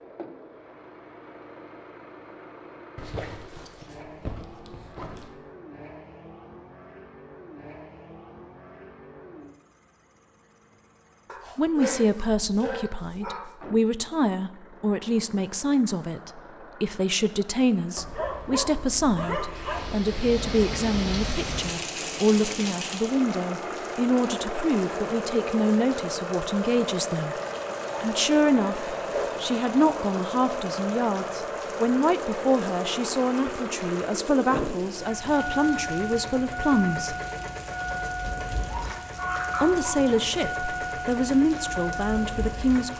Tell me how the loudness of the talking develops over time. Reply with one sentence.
The loudness of the talking stays about the same.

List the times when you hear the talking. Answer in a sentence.
You can hear the talking from 11.6 to 27.4 s, from 28.0 to 37.1 s and from 39.6 to 42.9 s.